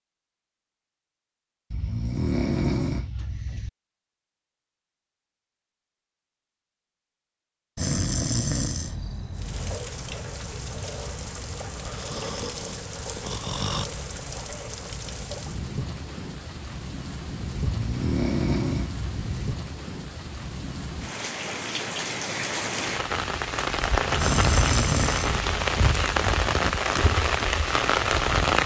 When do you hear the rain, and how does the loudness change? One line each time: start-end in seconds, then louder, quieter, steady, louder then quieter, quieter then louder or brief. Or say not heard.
9.3-28.6 louder.